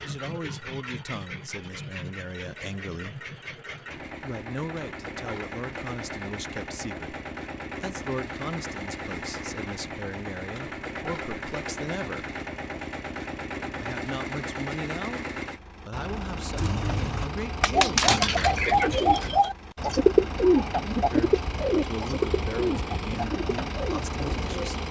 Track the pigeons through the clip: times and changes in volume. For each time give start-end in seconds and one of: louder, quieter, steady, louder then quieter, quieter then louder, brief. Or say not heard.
16.5-24.8 quieter.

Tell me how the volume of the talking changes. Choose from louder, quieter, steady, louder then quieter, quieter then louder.
steady.